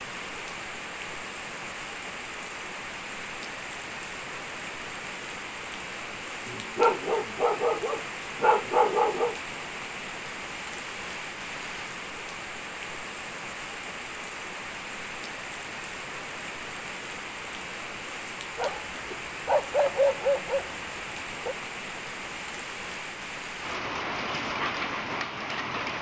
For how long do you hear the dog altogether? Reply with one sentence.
The dog can be heard for 6 seconds in total.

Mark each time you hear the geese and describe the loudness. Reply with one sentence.
The geese can't be heard in this clip.